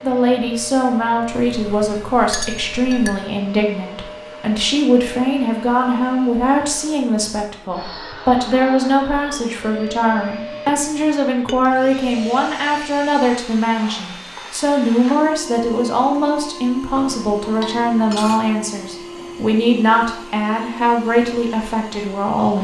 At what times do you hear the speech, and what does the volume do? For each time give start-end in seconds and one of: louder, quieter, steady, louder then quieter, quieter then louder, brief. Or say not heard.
0.0-22.5 steady.